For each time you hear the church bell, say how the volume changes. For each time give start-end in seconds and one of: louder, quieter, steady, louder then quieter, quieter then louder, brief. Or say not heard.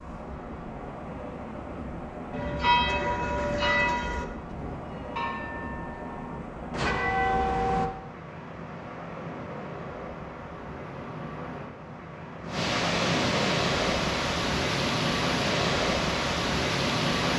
2.3-7.9 quieter then louder.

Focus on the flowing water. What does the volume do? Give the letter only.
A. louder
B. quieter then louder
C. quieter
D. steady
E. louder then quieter
A.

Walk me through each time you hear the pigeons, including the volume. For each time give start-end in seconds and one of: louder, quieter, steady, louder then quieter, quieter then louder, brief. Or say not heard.
not heard.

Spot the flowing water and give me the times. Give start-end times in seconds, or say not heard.
0.0-17.3.